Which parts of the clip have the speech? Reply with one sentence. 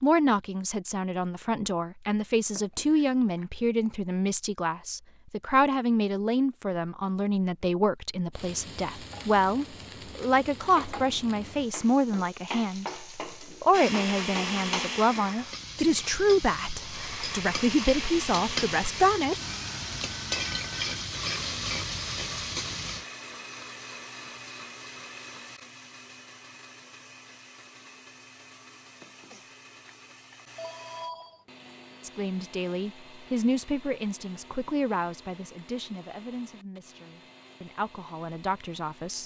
You can hear the speech from 0.0 to 19.4 s and from 32.0 to 39.2 s.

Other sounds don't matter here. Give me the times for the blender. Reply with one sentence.
The blender can be heard from 13.7 to 39.2 s.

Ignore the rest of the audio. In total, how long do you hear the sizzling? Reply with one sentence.
You can hear the sizzling for 15 seconds altogether.